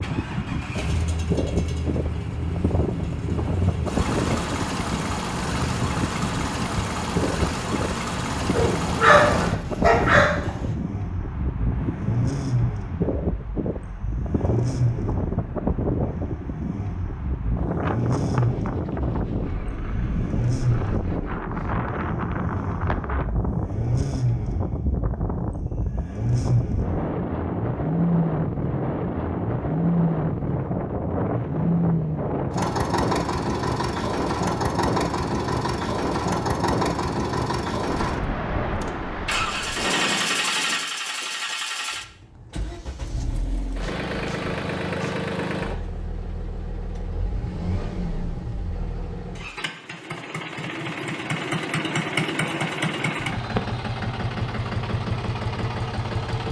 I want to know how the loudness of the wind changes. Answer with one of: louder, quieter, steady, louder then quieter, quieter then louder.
steady.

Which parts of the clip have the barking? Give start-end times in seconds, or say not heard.
8.5-10.8.